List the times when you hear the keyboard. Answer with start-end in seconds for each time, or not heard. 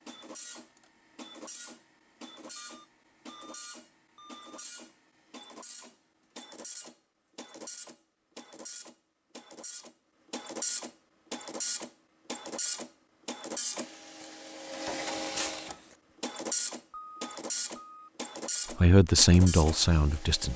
not heard.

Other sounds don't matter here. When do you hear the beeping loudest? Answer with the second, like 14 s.
17 s.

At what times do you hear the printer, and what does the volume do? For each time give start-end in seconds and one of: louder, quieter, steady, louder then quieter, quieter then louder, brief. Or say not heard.
0.0-20.5 louder.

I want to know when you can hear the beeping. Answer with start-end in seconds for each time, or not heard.
2.5-4.7, 16.9-18.1.